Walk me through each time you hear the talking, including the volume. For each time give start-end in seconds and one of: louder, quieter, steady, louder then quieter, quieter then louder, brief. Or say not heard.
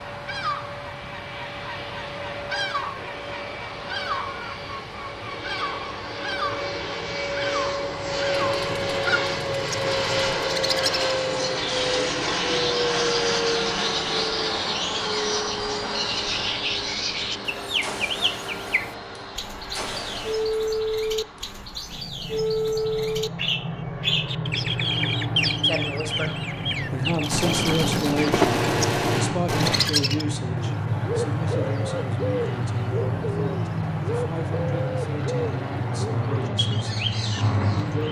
25.6-38.0 quieter.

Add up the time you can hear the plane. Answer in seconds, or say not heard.
38 s.